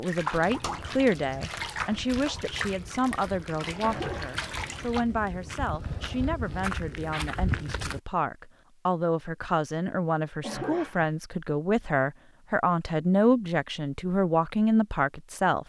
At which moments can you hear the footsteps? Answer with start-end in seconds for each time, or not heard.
0.1-8.0.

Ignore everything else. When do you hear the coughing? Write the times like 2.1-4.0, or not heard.
3.8-4.4, 10.4-11.1.